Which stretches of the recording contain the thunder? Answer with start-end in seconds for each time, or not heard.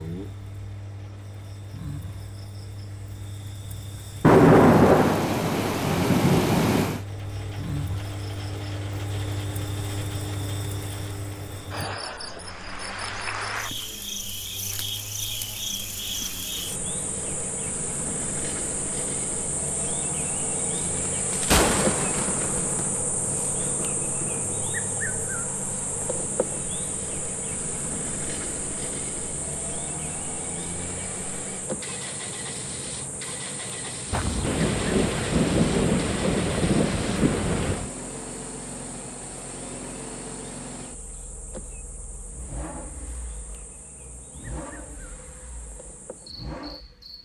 4.2-7.0, 21.3-24.7, 34.1-37.9.